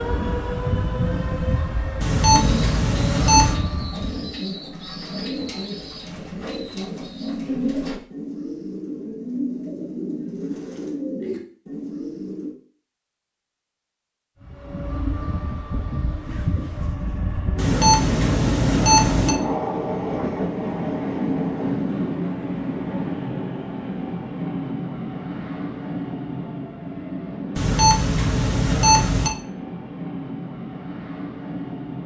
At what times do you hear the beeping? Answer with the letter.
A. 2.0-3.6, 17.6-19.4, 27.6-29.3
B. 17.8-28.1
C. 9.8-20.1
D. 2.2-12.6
A.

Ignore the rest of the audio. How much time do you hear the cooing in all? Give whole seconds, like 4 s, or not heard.
10 s.